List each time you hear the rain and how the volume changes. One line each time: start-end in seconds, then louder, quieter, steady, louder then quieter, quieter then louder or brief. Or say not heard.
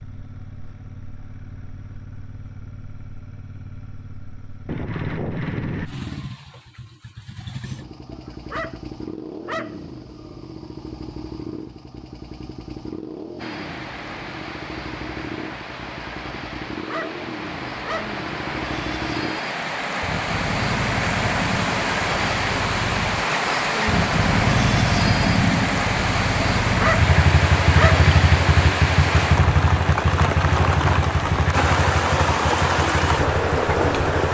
13.3-34.2 louder.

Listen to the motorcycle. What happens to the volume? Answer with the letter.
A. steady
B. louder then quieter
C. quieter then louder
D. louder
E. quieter
D.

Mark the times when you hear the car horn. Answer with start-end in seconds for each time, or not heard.
4.7-5.9.